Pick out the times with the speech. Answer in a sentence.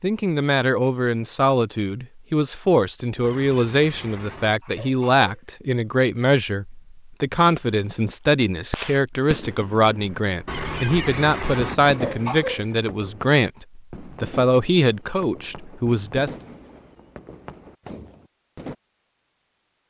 You can hear the speech from 0.0 to 16.4 s.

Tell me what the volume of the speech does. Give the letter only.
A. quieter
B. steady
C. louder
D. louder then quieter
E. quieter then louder
B.